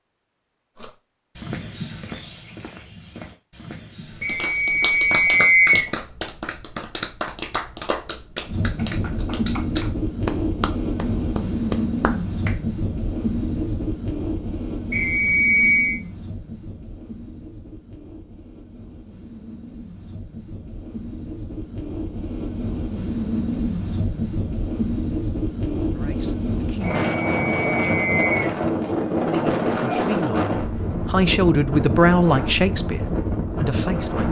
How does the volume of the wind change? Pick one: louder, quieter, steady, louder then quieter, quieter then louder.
quieter then louder.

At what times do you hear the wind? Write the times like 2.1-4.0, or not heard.
8.4-34.2.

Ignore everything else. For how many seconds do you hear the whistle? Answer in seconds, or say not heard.
4 s.